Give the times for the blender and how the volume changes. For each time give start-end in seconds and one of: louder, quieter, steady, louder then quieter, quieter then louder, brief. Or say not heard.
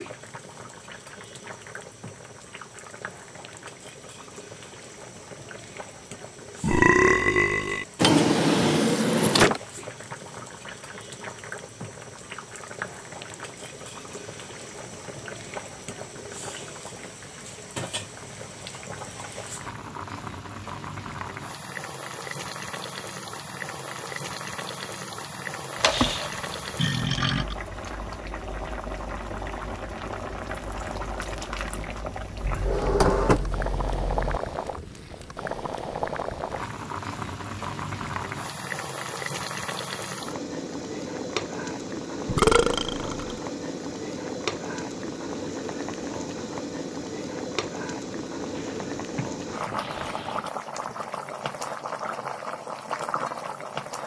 not heard.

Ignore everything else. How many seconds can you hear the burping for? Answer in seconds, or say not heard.
4 s.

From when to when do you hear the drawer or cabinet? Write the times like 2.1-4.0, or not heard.
8.0-9.6, 32.4-34.4, 48.5-50.5.